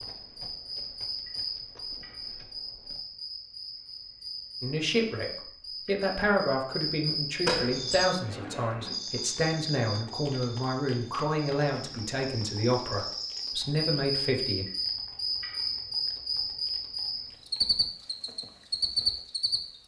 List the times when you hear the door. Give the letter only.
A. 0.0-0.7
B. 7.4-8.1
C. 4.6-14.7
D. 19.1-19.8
B.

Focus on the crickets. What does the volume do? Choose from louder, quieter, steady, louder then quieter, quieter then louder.
louder.